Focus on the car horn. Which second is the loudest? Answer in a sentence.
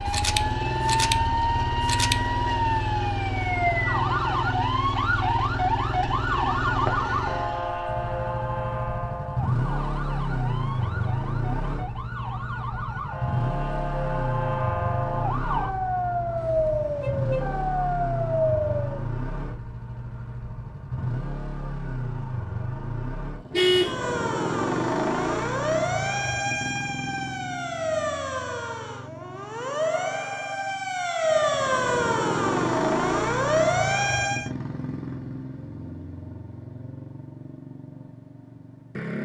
The volume of the car horn peaks at 24 seconds.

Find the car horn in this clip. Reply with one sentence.
You can hear the car horn from 16.4 to 17.5 s and from 23.5 to 24.1 s.